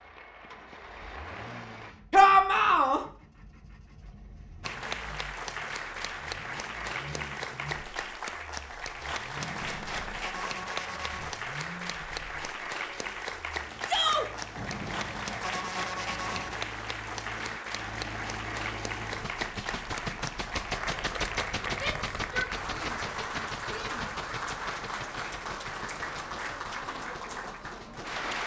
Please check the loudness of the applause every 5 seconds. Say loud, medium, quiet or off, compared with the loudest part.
medium, loud, loud, loud, loud, loud.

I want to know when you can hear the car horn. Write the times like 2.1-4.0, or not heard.
9.3-11.4, 14.6-16.6.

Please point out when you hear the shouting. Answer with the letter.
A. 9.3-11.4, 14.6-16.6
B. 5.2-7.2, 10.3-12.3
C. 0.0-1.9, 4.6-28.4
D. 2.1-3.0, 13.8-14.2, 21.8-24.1
D.